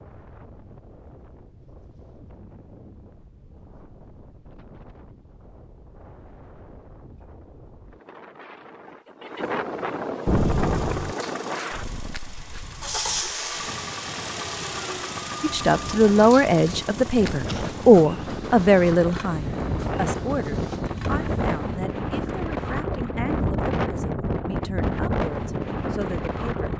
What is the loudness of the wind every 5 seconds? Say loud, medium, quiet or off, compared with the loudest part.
quiet, medium, medium, medium, loud, loud.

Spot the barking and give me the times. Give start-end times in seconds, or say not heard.
not heard.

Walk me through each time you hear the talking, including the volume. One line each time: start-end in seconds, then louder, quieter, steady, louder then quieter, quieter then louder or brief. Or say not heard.
15.4-26.7 quieter.